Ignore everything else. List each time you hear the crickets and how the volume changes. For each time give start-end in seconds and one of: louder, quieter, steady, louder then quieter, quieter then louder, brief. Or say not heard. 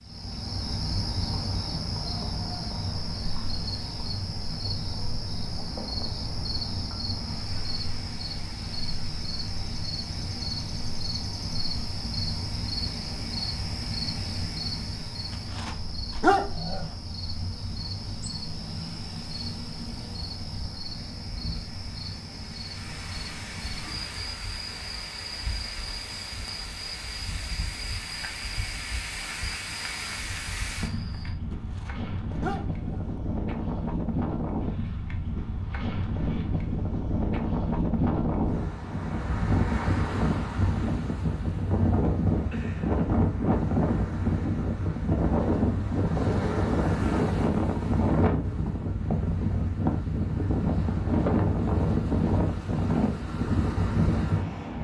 0.0-31.4 quieter.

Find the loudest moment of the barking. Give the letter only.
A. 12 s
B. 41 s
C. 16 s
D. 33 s
C.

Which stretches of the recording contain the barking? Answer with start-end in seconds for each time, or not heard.
15.5-16.9, 31.5-33.1.